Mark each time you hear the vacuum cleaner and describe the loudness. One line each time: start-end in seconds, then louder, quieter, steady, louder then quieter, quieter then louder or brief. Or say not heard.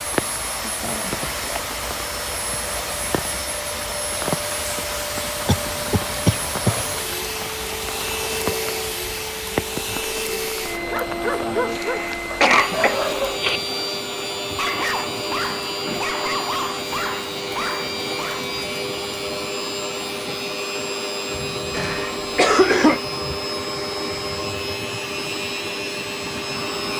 0.0-26.9 steady.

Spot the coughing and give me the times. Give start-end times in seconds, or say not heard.
5.5-6.9, 11.8-13.6, 21.7-23.0.